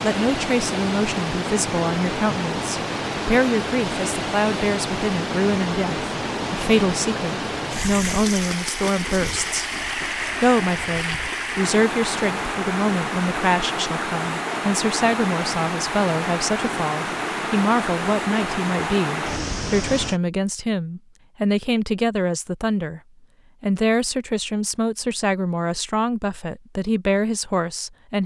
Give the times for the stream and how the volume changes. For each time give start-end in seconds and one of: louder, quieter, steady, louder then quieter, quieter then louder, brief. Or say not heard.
0.0-20.2 steady.